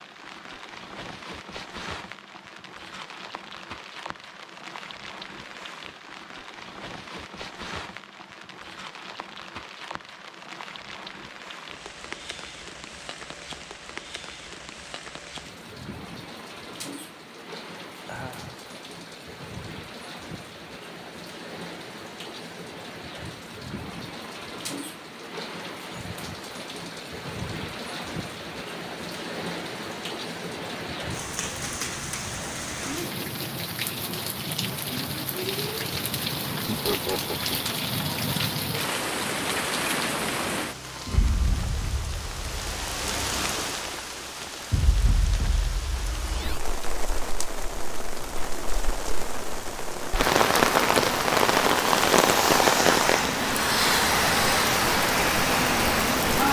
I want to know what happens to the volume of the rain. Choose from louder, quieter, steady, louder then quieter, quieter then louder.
louder.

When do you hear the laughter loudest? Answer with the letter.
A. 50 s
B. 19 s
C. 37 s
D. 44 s
C.